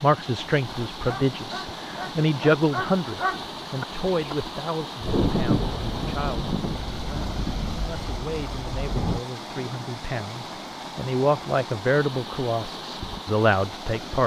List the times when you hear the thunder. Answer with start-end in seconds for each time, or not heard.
5.0-9.2.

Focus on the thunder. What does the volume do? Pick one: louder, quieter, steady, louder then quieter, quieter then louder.
quieter.